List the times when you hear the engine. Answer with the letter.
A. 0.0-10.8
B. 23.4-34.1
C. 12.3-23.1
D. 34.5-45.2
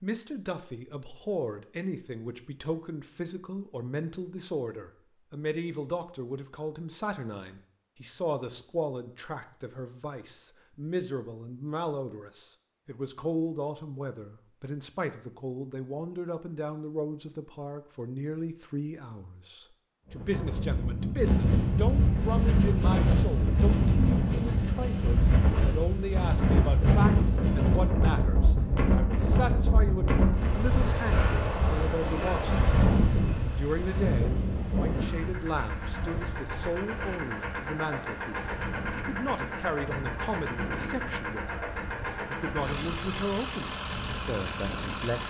D.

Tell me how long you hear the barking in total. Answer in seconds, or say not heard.
not heard.